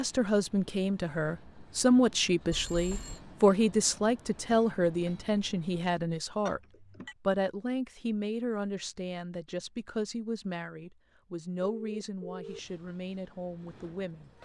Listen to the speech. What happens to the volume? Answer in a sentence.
The loudness of the speech goes down.